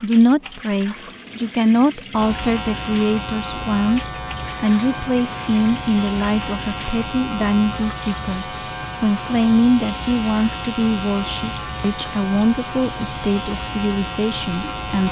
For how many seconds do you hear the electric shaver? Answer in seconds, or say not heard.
13 s.